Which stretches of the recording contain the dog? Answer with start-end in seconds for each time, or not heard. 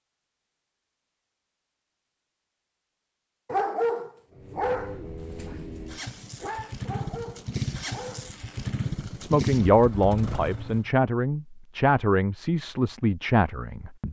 3.5-8.4.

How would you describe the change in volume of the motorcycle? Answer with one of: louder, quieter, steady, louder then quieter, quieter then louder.
louder.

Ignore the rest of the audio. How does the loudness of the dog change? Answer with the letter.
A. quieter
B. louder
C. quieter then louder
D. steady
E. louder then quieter
C.